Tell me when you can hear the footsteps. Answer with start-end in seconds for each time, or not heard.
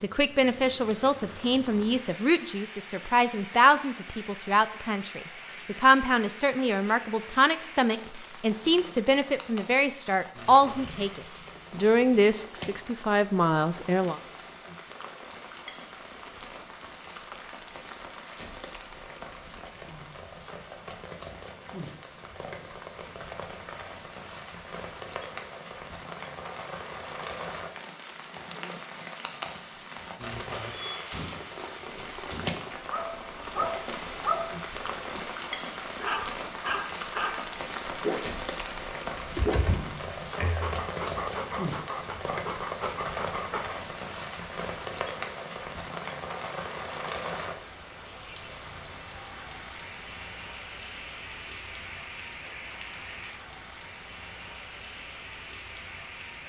not heard.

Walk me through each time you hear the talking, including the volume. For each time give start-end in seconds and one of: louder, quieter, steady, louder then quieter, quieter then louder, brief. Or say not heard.
0.0-14.2 steady.